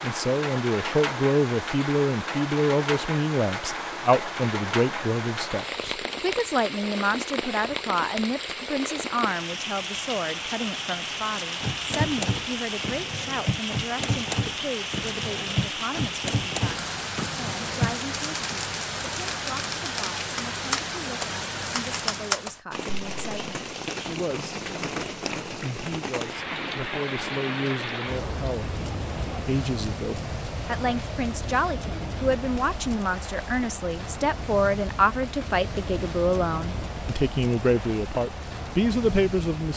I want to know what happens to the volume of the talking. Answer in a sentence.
The loudness of the talking goes down, then up.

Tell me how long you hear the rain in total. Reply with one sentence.
The rain can be heard for 40 seconds in total.